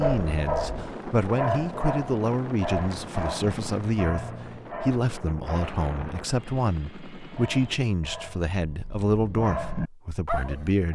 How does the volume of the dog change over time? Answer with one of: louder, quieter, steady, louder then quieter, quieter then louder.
quieter then louder.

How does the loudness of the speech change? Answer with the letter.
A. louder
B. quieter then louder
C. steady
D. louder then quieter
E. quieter
C.